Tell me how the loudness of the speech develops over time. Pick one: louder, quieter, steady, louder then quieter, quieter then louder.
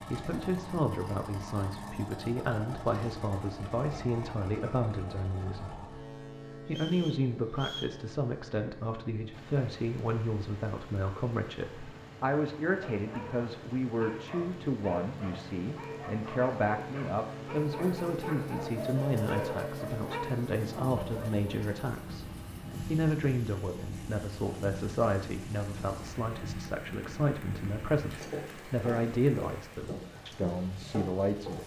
steady.